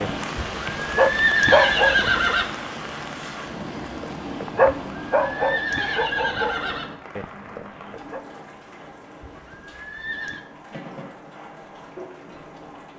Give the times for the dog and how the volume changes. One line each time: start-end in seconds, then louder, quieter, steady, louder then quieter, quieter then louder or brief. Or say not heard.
0.0-2.0 brief
4.0-8.2 quieter.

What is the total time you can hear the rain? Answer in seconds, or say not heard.
13 s.